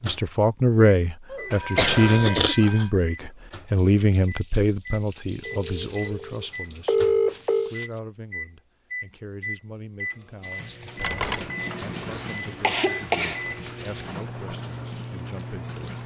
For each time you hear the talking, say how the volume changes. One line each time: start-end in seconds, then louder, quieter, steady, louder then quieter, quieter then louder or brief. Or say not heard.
0.0-7.0 quieter
7.7-16.0 steady.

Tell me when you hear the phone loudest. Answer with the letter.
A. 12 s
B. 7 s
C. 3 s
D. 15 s
B.